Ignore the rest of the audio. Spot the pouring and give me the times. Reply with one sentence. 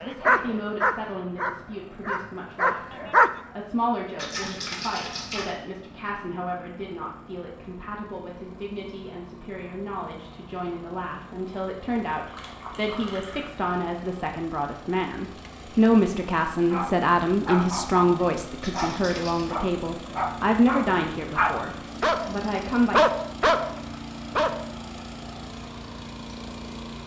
The pouring can be heard from 4.2 to 5.5 s, from 12.2 to 13.5 s and from 18.6 to 19.5 s.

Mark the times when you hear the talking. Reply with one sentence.
You can hear the talking from 0.0 to 23.0 s.